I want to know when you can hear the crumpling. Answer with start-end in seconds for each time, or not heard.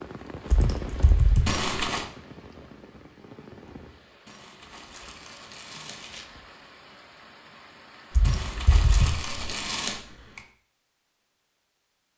1.4-2.0, 4.2-6.2, 8.2-10.0.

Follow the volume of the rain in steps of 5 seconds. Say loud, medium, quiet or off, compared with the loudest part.
loud, medium, off.